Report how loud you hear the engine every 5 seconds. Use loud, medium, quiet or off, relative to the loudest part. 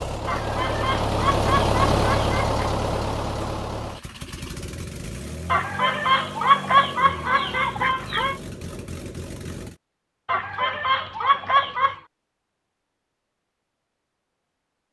loud, medium, off.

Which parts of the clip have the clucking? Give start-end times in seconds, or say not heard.
0.2-2.6, 5.5-8.3, 10.2-12.0.